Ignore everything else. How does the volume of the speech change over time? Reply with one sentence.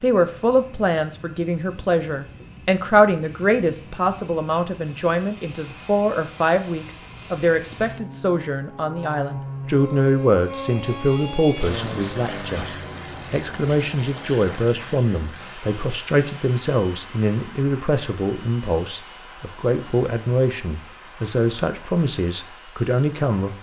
The loudness of the speech stays about the same.